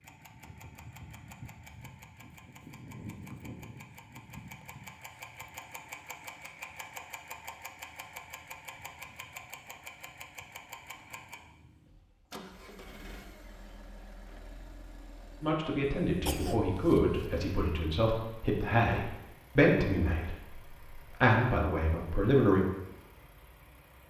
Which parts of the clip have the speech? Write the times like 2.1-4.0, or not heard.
15.4-22.6.